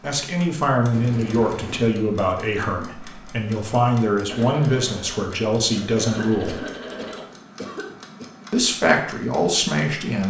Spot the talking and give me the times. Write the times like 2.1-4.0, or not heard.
0.0-6.6, 8.5-10.2.